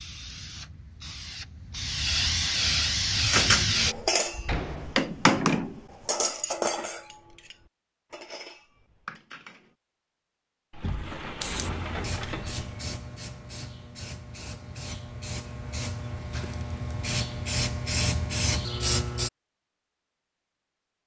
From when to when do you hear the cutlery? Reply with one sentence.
You can hear the cutlery from 3.3 to 9.7 s.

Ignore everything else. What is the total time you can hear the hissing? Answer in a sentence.
You can hear the hissing for 12 seconds altogether.